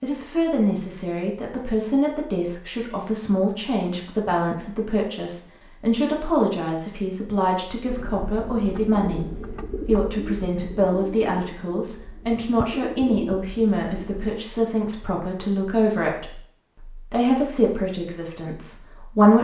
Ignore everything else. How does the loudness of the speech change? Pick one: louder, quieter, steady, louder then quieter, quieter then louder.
steady.